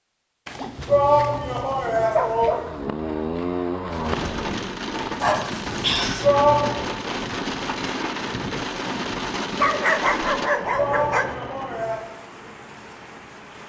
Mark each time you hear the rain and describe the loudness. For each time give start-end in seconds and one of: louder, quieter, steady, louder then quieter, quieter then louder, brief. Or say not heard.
3.9-13.6 quieter.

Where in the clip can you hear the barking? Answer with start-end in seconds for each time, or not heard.
0.5-2.8, 5.2-6.2, 9.6-11.3.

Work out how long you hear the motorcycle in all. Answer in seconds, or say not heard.
2 s.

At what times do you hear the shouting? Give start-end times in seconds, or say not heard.
0.8-2.5, 6.2-6.9, 10.7-12.1.